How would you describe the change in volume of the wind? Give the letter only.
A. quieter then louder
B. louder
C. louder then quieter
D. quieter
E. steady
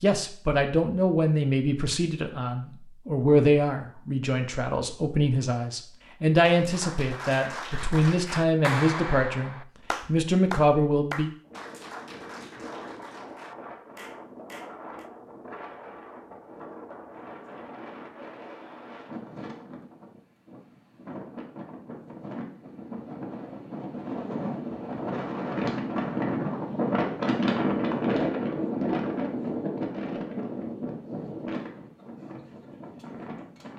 C.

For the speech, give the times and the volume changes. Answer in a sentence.
You can hear the speech from 0.0 to 11.3 s, at a steady volume.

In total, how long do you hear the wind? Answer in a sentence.
You can hear the wind for 22 seconds altogether.